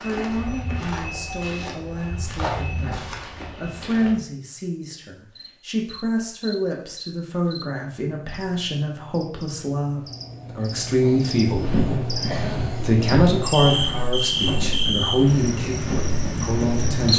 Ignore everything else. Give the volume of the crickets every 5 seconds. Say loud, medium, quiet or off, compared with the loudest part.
off, quiet, loud, loud.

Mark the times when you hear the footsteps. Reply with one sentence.
You can hear the footsteps from 0.0 to 4.2 s and from 11.4 to 16.9 s.